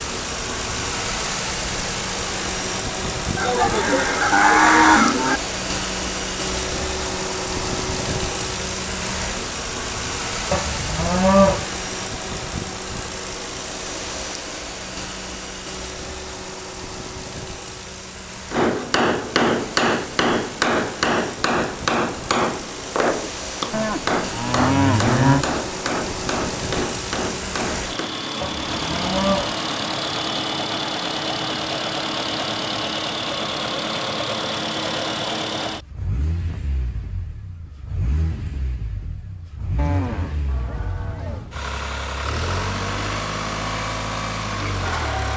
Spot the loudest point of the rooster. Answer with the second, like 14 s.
5 s.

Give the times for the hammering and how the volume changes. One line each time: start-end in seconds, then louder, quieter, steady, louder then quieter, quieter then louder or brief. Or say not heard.
18.5-28.1 quieter.